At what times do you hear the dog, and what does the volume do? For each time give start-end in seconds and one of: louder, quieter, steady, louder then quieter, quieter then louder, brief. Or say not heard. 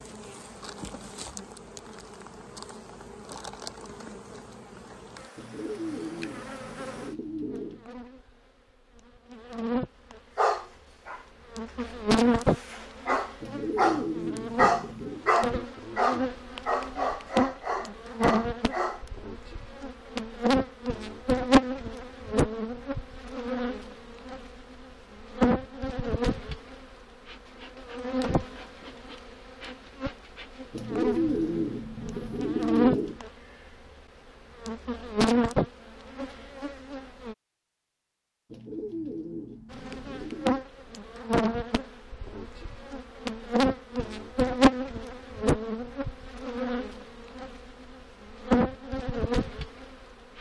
10.3-11.2 brief
11.8-19.0 louder then quieter.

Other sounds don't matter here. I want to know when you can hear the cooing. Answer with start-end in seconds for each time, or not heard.
5.3-7.8, 13.4-15.2, 30.7-33.2, 38.5-40.6.